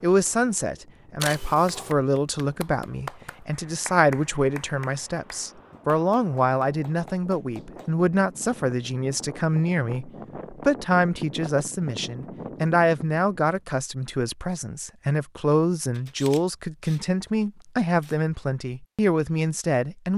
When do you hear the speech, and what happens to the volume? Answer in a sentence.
The speech can be heard from 0.0 to 20.1 s, at a steady volume.